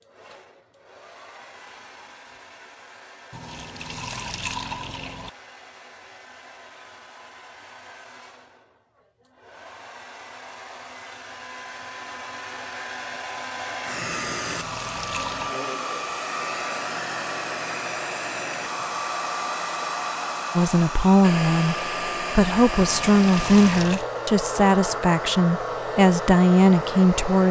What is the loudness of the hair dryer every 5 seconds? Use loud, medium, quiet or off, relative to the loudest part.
quiet, quiet, medium, loud, loud, loud.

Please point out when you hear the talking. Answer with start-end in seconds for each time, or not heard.
20.6-27.4.